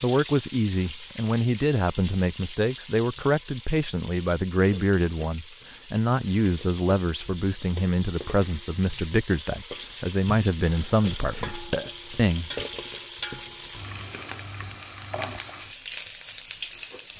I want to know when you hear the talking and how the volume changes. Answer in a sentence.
The talking can be heard from 0.0 to 12.5 s, at a steady volume.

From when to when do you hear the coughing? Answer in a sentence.
You can't hear the coughing here.